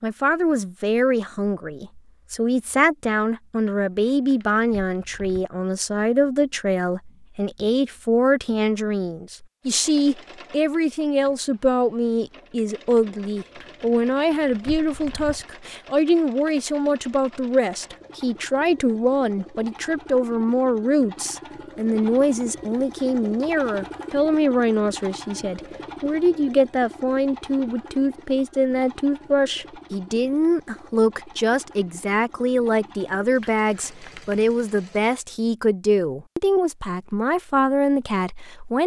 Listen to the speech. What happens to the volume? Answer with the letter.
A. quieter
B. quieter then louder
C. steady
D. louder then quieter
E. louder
C.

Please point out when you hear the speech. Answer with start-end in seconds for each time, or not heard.
0.0-38.8.